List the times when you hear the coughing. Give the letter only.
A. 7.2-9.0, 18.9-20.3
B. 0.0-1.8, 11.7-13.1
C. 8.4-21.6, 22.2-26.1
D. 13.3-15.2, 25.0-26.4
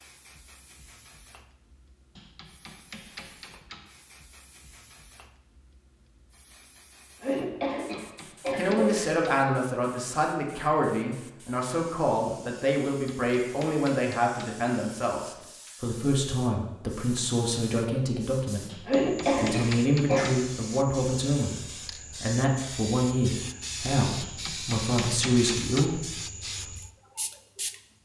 A.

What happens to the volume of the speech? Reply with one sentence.
The volume of the speech stays about the same.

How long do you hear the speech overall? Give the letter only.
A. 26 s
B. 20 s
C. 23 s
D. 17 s
D.